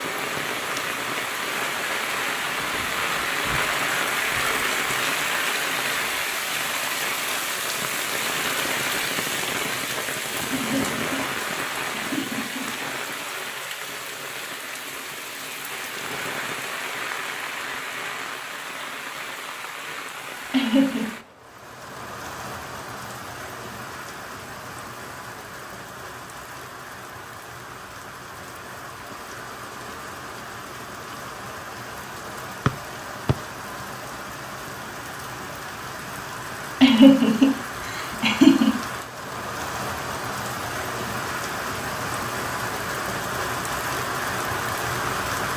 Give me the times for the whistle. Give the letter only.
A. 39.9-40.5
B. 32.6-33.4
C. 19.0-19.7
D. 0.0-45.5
B.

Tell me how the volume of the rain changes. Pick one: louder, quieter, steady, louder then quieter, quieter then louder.
quieter then louder.